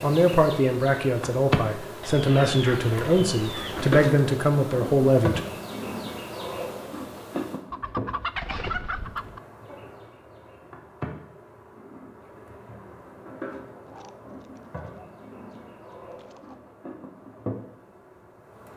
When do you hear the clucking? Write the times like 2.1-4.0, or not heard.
2.0-4.0, 7.7-9.4, 13.8-16.6.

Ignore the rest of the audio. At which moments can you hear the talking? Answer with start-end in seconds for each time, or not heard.
0.0-5.5.